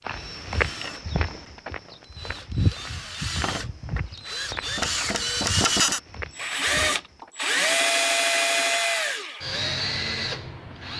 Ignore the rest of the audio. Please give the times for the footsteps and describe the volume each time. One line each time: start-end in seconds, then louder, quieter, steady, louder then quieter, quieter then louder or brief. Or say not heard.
0.1-7.3 quieter.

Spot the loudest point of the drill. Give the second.
8 s.